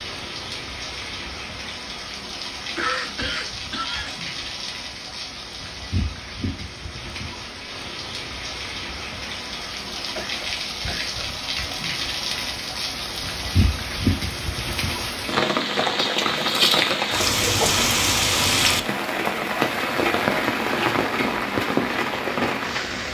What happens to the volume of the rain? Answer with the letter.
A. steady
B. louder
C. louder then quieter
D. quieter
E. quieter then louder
B.